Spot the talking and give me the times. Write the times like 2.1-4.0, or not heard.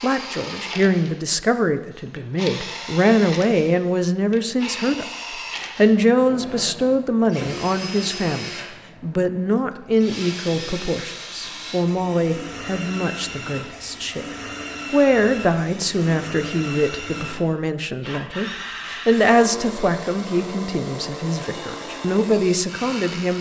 0.0-14.2, 14.9-23.3.